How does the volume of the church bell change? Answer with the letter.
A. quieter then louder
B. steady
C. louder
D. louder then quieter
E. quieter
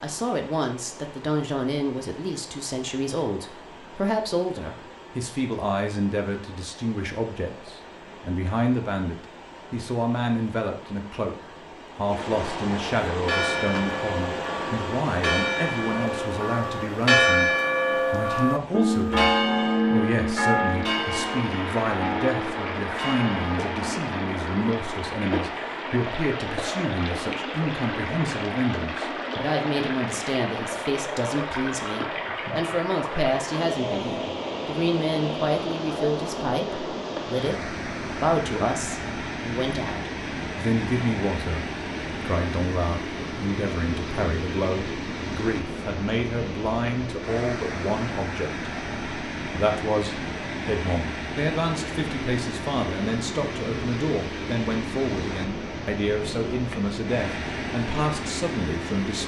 D.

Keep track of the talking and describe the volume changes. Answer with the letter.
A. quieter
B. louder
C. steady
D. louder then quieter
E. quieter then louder
C.